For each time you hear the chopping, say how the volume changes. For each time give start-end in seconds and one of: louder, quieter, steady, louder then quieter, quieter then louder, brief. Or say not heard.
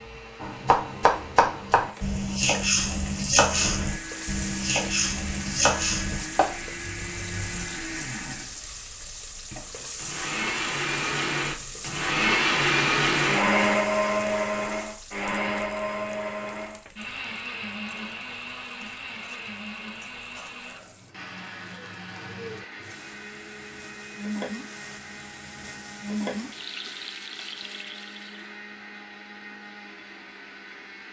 0.4-7.7 quieter.